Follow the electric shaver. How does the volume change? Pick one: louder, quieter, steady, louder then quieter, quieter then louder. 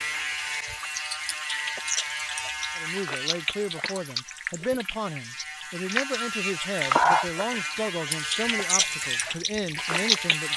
quieter then louder.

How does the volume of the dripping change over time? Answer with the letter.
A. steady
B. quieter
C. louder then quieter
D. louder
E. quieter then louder
C.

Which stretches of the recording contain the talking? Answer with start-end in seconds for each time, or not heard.
2.8-10.5.